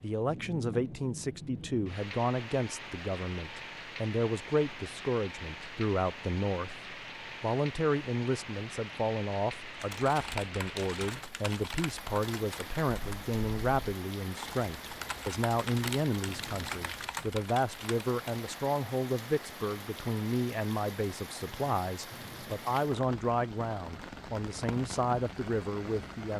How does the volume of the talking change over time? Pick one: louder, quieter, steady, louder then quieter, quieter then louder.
steady.